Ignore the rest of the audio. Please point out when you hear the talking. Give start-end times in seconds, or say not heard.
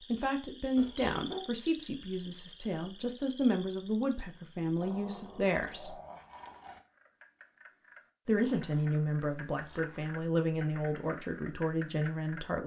0.1-6.0, 8.2-12.6.